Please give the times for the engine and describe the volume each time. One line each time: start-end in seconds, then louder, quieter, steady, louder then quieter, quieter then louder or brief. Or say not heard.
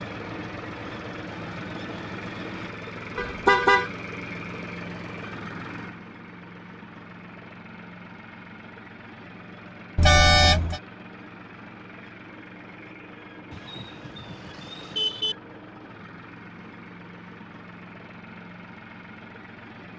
0.0-19.9 quieter.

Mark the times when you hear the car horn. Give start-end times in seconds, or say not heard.
3.1-3.9, 9.9-10.8, 13.5-15.3.